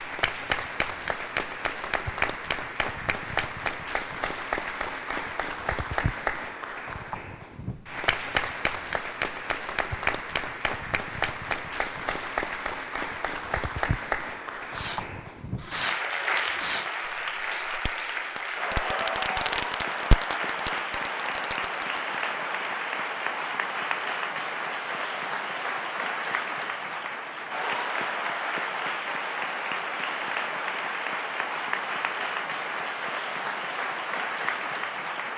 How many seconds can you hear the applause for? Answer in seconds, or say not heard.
35 s.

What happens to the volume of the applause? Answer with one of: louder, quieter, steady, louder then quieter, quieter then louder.
steady.